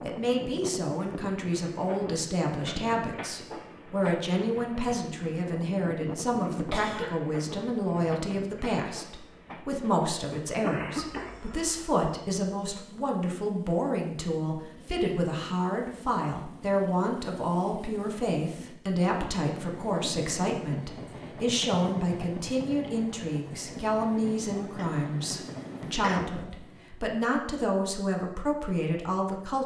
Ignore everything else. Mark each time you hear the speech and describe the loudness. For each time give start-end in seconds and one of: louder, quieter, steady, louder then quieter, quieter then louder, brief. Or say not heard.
0.0-29.6 steady.